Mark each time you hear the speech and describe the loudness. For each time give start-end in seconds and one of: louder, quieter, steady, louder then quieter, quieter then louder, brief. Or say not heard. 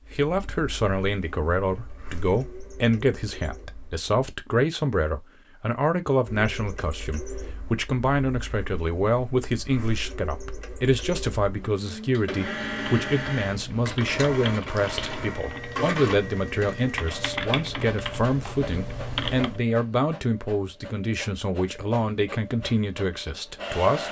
0.1-24.0 steady.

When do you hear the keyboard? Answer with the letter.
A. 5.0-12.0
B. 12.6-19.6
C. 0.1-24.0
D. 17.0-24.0
B.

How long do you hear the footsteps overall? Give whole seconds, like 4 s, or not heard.
not heard.